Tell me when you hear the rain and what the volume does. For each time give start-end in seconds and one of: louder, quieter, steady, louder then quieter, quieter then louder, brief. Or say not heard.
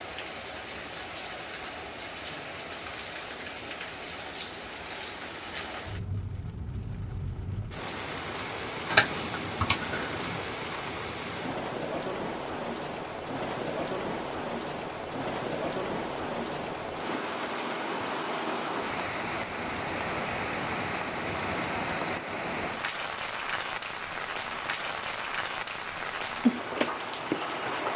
0.0-27.9 louder.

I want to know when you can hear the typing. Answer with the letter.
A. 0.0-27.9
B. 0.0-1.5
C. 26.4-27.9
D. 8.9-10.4
D.